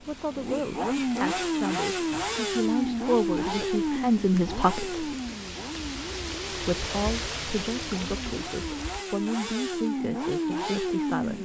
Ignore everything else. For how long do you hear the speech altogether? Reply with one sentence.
The speech can be heard for 10 seconds in total.